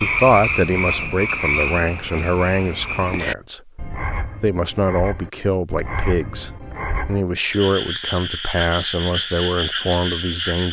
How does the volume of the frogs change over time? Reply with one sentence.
The loudness of the frogs goes down, then up.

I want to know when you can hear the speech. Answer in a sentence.
The speech can be heard from 0.0 to 3.7 s and from 4.4 to 10.6 s.